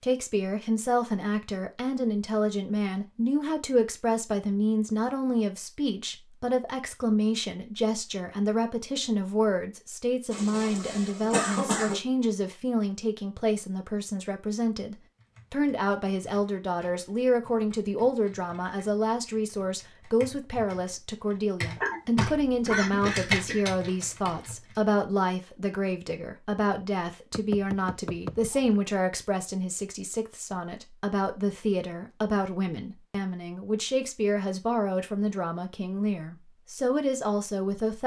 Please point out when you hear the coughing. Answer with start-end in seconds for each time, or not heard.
10.3-12.0, 21.8-23.6.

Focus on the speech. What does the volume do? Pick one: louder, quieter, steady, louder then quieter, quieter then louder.
steady.